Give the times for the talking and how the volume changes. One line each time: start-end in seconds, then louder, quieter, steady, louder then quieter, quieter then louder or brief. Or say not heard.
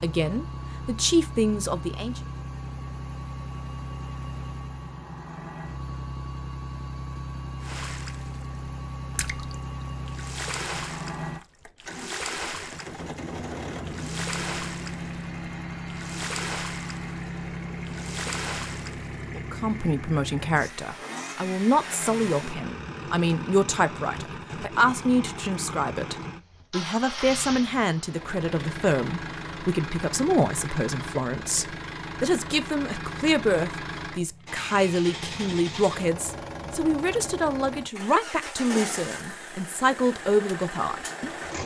0.0-2.2 brief
19.4-41.4 steady.